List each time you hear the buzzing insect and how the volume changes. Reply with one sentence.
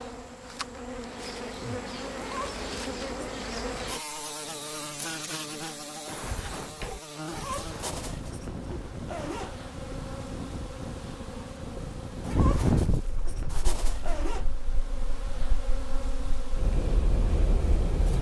You can hear the buzzing insect from 0.0 to 18.1 s, getting quieter.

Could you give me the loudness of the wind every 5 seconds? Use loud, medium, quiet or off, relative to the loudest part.
off, medium, loud, loud.